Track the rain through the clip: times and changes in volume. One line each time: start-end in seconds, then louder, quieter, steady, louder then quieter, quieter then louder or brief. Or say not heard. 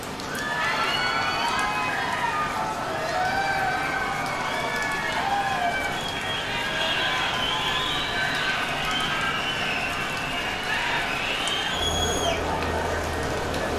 0.0-13.7 steady.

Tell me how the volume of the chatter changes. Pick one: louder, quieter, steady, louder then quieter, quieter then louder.
steady.